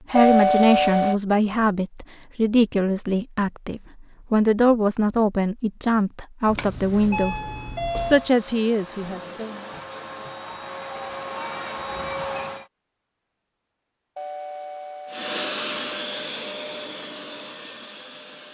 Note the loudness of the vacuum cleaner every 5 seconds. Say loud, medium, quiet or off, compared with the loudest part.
off, medium, loud, loud.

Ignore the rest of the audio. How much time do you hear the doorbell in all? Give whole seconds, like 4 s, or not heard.
4 s.